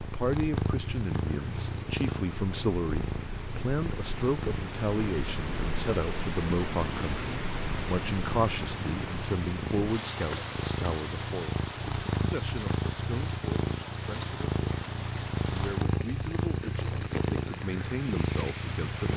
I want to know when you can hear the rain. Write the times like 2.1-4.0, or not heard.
0.0-19.1.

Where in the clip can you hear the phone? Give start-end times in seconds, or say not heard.
not heard.